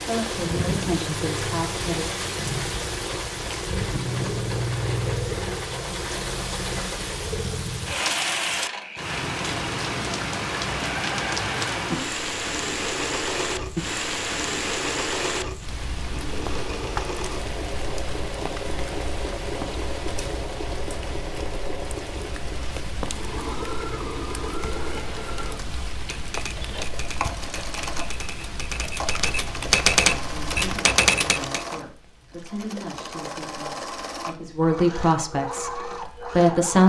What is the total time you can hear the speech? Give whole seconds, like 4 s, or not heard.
9 s.